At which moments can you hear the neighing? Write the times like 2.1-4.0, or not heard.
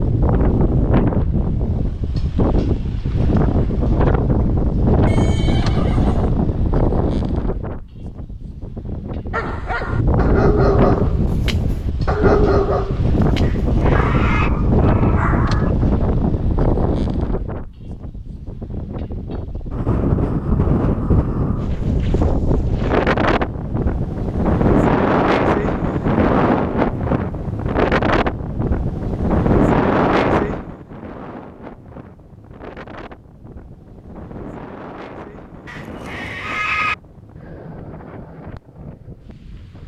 5.0-6.3, 13.4-14.5, 35.6-37.0.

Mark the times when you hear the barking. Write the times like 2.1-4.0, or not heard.
9.3-15.8.